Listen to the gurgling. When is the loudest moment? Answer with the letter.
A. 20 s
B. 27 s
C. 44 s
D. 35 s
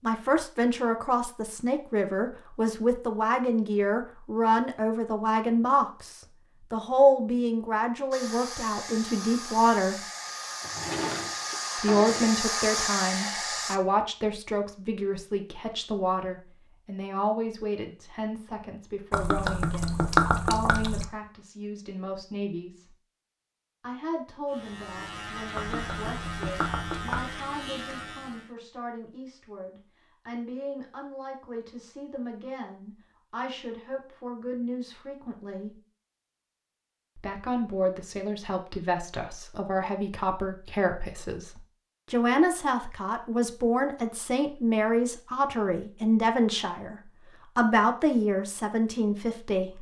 A.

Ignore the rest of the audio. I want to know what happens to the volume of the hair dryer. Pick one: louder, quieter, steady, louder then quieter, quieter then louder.
louder.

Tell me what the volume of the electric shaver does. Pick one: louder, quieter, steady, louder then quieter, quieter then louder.
steady.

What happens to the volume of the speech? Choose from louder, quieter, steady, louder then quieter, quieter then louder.
quieter then louder.